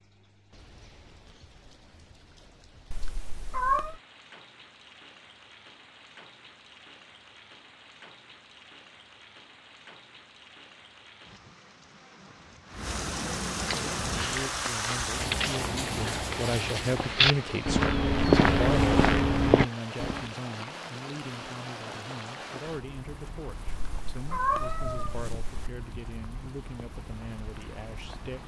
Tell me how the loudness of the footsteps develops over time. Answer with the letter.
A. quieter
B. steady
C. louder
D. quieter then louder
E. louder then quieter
C.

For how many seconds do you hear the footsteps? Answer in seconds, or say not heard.
7 s.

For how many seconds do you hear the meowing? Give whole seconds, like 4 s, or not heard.
3 s.